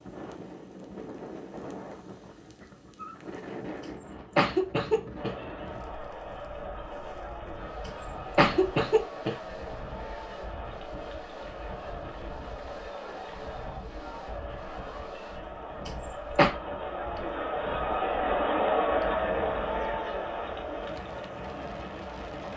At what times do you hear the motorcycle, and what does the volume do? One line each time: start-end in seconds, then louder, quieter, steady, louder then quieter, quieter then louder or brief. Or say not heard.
not heard.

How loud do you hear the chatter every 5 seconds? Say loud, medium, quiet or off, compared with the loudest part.
off, medium, medium, loud, medium.